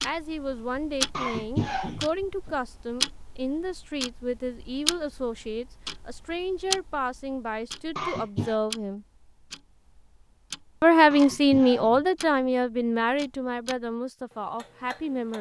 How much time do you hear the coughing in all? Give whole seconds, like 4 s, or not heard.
3 s.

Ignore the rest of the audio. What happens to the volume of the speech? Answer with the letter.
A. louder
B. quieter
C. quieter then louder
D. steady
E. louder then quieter
E.